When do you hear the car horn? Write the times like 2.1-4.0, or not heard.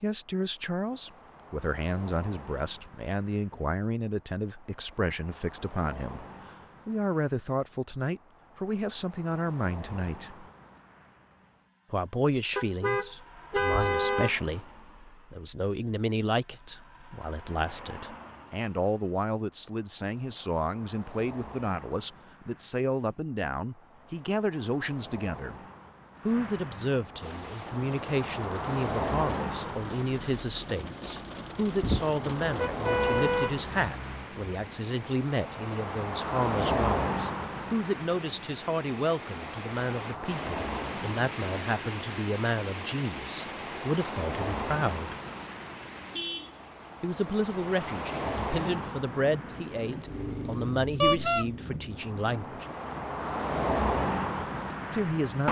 12.6-14.3, 31.8-33.6, 51.0-51.5.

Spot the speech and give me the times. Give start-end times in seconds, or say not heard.
0.0-6.2, 6.8-10.4, 11.9-25.6, 26.2-45.1, 47.0-52.6, 54.9-55.4.